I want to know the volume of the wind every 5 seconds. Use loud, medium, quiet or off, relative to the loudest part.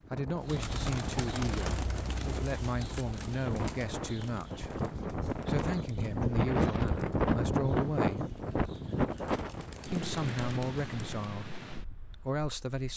medium, loud, medium.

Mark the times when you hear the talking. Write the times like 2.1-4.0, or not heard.
0.1-8.3, 9.9-12.9.